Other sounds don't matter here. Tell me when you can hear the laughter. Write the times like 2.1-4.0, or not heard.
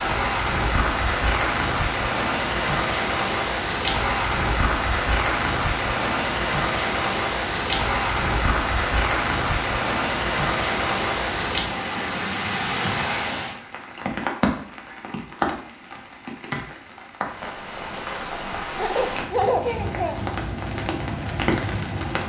18.8-20.1.